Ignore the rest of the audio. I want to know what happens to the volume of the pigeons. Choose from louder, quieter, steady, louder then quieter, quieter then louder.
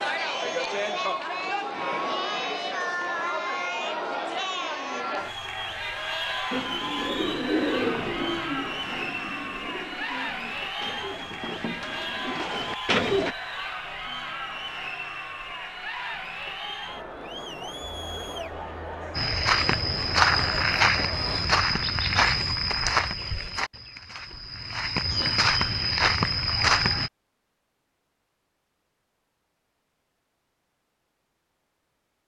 quieter then louder.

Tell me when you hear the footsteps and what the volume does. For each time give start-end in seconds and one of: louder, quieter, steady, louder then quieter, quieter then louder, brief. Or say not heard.
19.1-27.1 quieter then louder.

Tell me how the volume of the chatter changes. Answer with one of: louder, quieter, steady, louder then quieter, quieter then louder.
quieter.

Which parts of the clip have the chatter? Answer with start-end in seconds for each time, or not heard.
0.0-21.4.